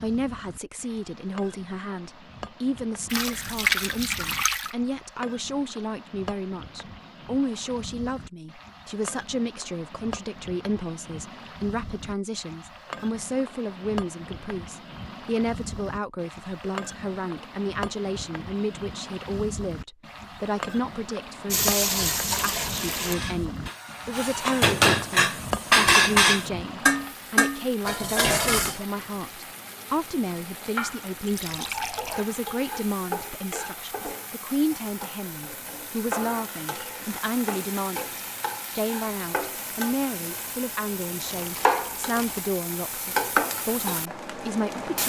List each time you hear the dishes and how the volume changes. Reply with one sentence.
The dishes can be heard from 23.1 to 28.9 s, getting louder then quieter.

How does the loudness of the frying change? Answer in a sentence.
The volume of the frying goes up.